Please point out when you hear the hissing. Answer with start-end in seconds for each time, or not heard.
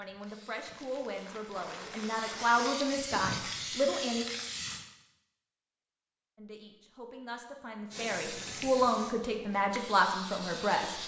0.0-4.8, 7.9-11.0.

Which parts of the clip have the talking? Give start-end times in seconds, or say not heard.
0.0-4.2, 6.3-10.9.